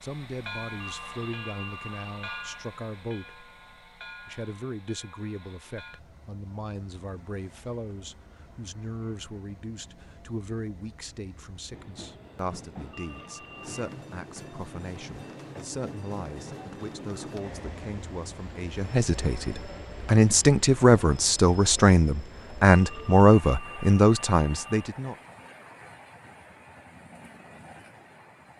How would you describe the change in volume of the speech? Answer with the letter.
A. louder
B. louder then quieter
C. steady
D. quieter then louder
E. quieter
A.